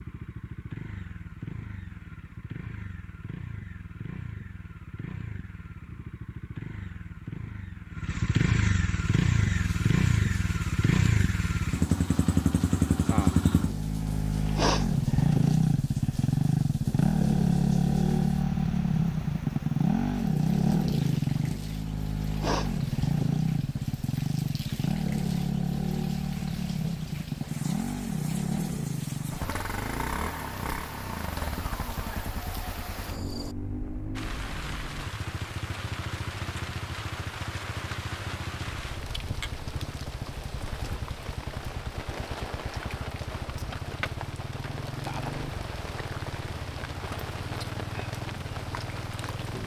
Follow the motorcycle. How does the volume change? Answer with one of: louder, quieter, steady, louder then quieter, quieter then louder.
louder then quieter.